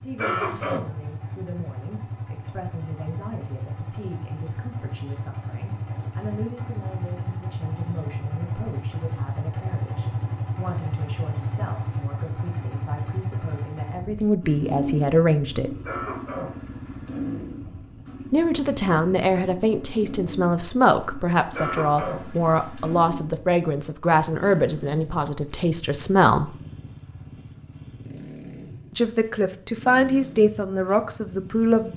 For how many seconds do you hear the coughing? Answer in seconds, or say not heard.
4 s.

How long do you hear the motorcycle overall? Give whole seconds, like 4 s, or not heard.
32 s.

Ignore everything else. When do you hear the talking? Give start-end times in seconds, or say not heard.
0.0-15.8, 18.3-26.6, 28.9-31.9.